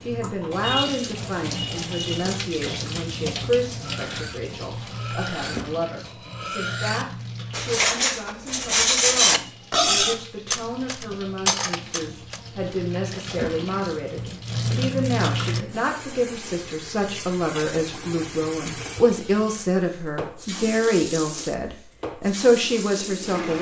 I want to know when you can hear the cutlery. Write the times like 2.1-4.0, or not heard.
3.8-12.4.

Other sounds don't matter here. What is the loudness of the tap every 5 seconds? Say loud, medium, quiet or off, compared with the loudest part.
loud, medium, loud, loud, loud.